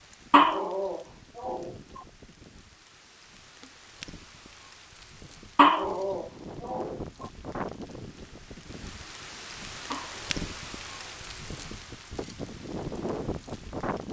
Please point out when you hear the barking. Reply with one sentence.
The barking can be heard from 0.3 to 1.7 s, from 5.5 to 7.0 s and from 9.9 to 11.3 s.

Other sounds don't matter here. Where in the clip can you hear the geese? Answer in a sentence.
The geese can't be heard in this clip.